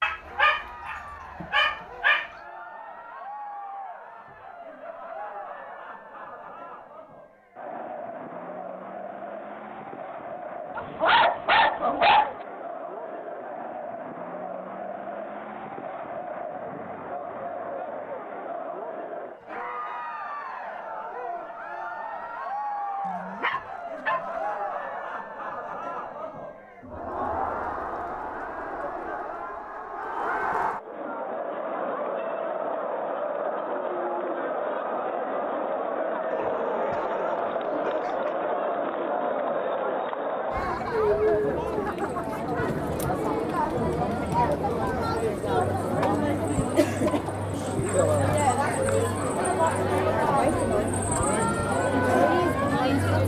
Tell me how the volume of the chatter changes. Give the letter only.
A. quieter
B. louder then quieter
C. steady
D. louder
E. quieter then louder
D.